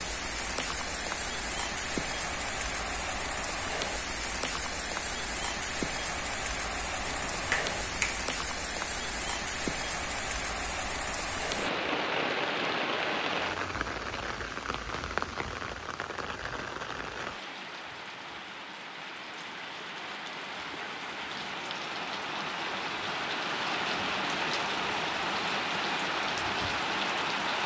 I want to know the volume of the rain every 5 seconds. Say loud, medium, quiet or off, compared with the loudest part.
loud, loud, loud, medium, loud, loud.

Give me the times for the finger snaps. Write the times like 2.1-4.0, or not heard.
7.0-8.1.